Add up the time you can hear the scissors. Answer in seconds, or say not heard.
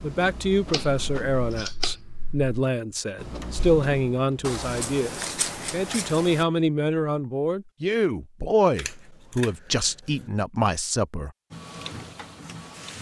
5 s.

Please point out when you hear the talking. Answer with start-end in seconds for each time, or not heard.
0.0-11.3.